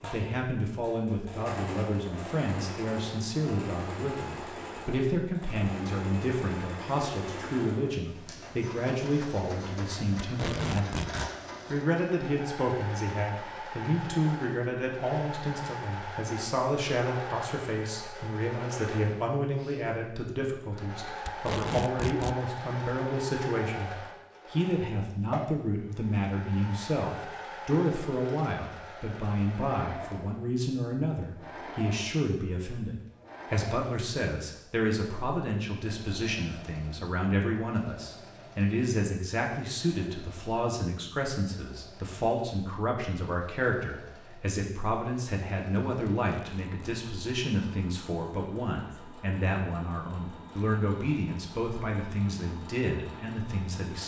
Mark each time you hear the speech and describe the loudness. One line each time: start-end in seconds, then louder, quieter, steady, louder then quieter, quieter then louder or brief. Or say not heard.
0.0-54.0 steady.